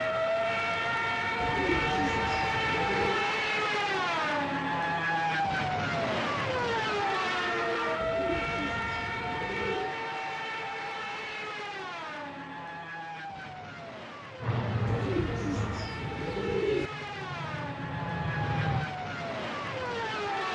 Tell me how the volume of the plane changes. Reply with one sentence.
The loudness of the plane goes down, then up.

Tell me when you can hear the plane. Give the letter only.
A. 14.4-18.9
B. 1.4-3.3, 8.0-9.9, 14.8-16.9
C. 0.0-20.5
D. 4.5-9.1
A.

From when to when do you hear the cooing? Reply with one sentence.
You can hear the cooing from 1.4 to 3.3 s, from 8.0 to 9.9 s and from 14.8 to 16.9 s.